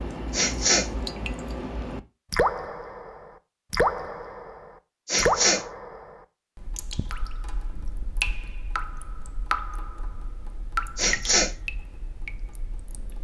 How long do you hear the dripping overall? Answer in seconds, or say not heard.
13 s.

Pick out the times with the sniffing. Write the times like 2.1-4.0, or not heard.
0.3-0.8, 5.0-5.6, 10.9-11.5.